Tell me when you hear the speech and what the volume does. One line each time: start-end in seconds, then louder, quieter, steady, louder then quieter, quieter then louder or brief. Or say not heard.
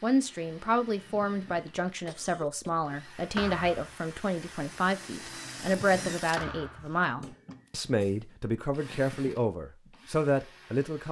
0.0-11.0 steady.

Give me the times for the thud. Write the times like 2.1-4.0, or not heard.
3.4-4.0, 6.3-7.0.